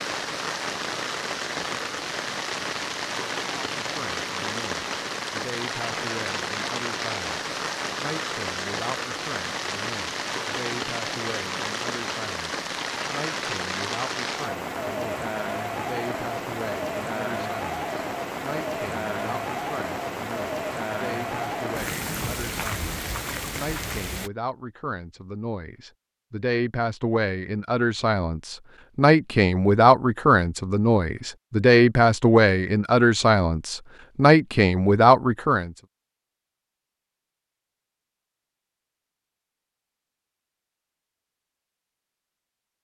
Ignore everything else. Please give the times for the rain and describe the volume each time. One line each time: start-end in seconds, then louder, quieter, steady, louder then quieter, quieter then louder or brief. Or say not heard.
0.0-24.3 steady.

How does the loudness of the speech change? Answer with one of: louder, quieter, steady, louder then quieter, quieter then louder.
louder.